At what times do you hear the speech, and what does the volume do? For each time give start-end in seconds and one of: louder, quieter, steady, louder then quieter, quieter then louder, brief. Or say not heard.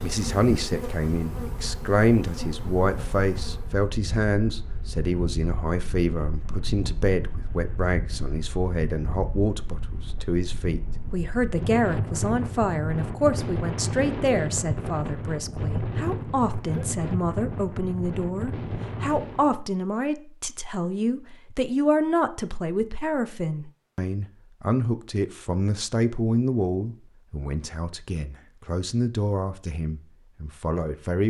0.0-31.2 steady.